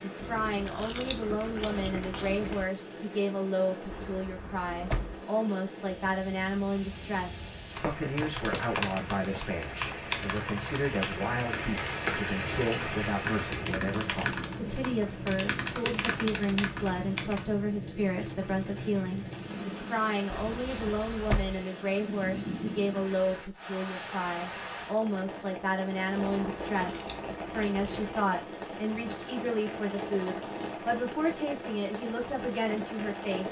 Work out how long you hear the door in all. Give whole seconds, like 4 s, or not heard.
2 s.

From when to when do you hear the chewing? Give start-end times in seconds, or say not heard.
0.2-2.7, 26.4-28.3.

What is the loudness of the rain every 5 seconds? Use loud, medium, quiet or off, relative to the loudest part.
medium, medium, loud, loud, loud, loud, loud.